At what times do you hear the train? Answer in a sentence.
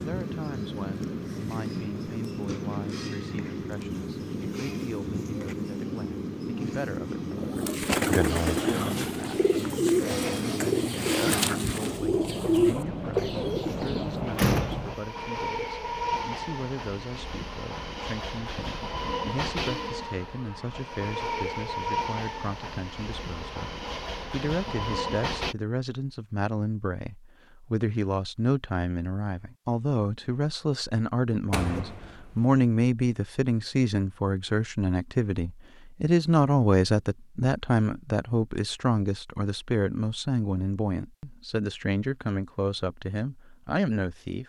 You can hear the train from 0.0 to 25.6 s.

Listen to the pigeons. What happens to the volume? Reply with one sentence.
The volume of the pigeons stays about the same.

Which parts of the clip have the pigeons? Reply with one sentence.
The pigeons can be heard from 7.3 to 14.2 s.